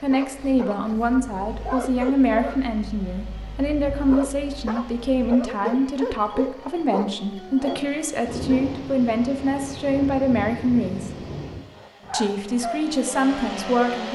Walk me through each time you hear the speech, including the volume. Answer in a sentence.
You can hear the speech from 0.0 to 11.2 s, at a steady volume; and briefly from 12.1 to 14.1 s.